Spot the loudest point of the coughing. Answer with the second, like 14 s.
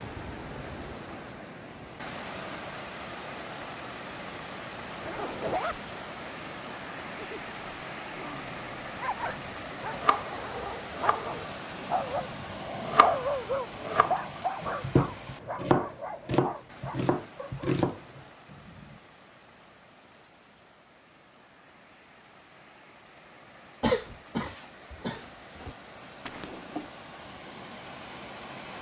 24 s.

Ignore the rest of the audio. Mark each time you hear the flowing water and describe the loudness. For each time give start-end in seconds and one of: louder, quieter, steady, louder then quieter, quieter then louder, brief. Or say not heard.
0.0-28.7 quieter then louder.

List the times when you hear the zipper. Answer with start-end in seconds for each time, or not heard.
5.0-5.8, 26.2-26.9.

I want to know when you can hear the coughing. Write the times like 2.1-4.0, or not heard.
23.8-25.8.